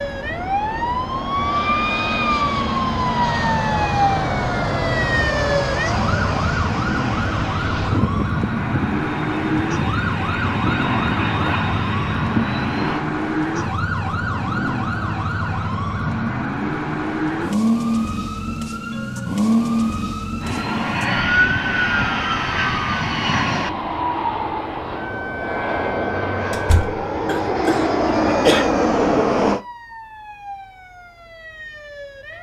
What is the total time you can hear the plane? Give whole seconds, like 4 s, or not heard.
22 s.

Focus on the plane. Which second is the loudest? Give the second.
29 s.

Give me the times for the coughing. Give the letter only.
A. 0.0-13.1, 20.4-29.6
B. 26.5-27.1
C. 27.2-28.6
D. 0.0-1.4
C.